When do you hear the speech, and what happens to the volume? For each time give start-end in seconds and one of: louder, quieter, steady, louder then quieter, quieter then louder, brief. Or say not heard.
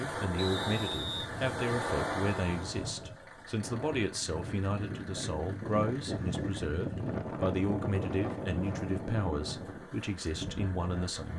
0.0-11.3 steady.